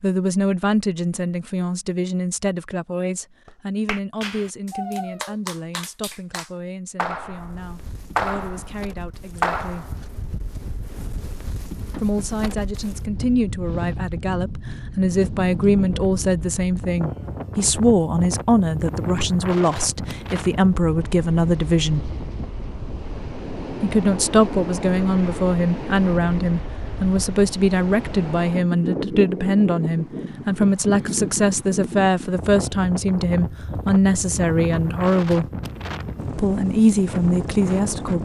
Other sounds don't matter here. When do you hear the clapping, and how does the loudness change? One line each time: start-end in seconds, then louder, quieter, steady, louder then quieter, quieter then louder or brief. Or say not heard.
3.5-10.2 louder.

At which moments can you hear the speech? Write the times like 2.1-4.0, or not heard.
0.0-9.9, 12.0-22.1, 23.8-35.5, 36.4-38.2.